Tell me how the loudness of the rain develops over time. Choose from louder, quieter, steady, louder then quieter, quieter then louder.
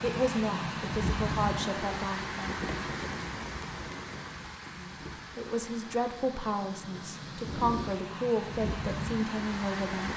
quieter then louder.